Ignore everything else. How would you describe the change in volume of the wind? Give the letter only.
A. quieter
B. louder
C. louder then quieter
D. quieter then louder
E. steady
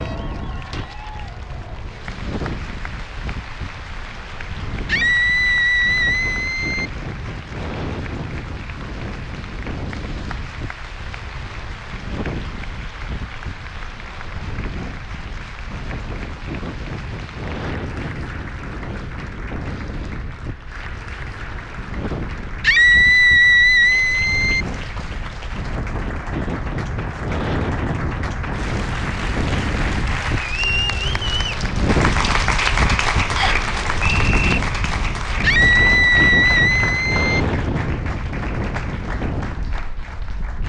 B.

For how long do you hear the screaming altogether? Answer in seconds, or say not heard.
6 s.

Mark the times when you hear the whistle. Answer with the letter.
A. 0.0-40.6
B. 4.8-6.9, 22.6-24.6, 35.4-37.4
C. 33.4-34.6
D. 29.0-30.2
C.